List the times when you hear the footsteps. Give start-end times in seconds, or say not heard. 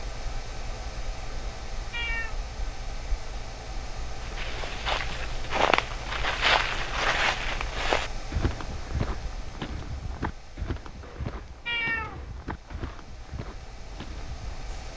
4.2-14.7.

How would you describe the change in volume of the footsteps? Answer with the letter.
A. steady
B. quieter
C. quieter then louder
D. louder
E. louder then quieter
B.